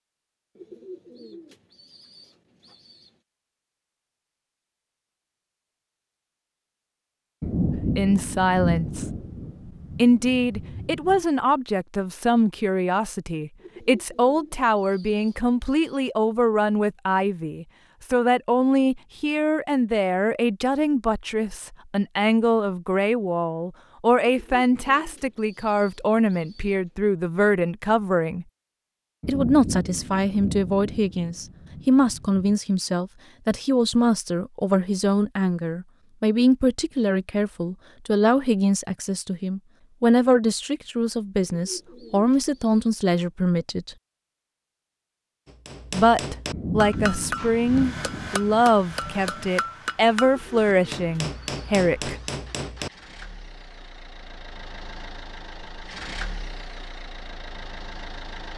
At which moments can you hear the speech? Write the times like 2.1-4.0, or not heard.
7.7-9.1, 9.9-28.4, 29.2-44.0, 45.9-52.1.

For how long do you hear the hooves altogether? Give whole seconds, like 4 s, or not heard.
not heard.